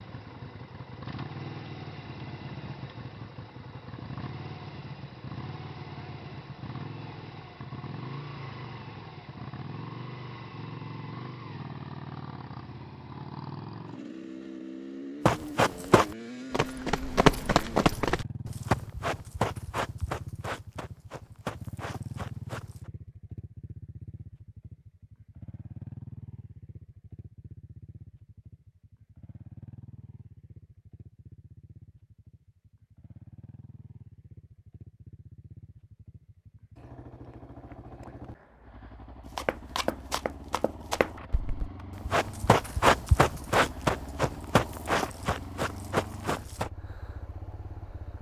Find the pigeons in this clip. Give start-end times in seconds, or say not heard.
not heard.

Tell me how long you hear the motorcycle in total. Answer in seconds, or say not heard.
48 s.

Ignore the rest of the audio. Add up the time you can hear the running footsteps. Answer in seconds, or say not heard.
15 s.